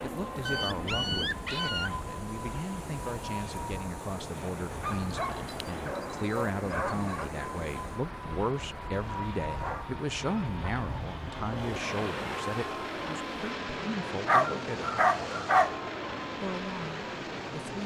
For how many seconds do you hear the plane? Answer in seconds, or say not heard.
18 s.